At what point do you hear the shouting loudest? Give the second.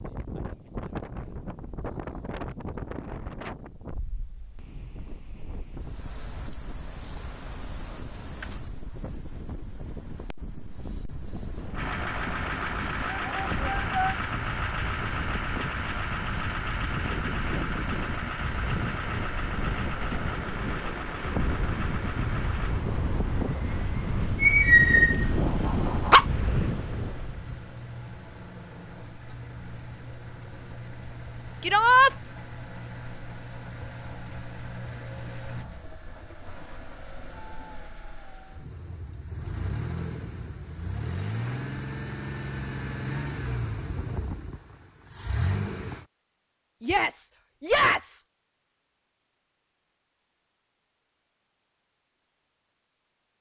32 s.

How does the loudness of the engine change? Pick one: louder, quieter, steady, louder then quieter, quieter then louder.
quieter then louder.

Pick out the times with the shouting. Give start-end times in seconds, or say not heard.
13.1-14.2, 31.6-32.1, 46.8-48.2.